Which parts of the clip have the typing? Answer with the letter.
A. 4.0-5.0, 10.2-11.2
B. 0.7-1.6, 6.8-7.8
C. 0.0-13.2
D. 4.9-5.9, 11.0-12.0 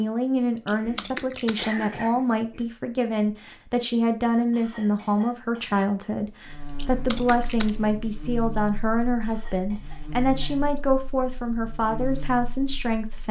B.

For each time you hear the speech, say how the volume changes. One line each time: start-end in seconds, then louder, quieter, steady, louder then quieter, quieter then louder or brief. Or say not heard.
0.0-13.2 steady.